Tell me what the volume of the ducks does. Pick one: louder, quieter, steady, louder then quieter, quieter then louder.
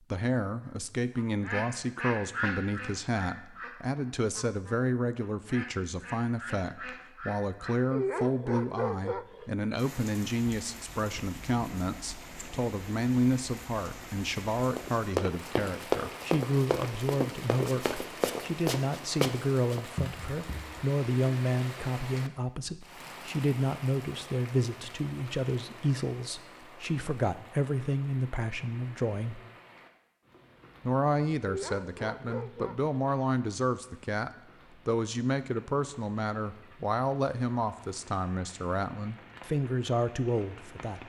quieter then louder.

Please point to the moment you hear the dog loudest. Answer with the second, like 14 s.
8 s.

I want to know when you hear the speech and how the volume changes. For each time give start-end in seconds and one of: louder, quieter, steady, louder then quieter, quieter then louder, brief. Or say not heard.
0.1-29.4 steady
30.9-41.0 steady.